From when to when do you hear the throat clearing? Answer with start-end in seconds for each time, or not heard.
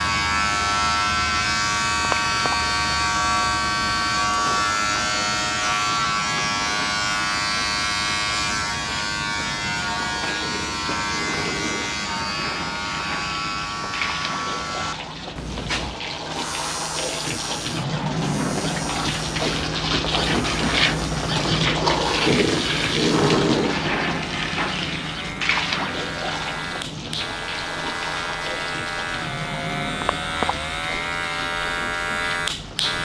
2.0-2.5, 30.0-30.6.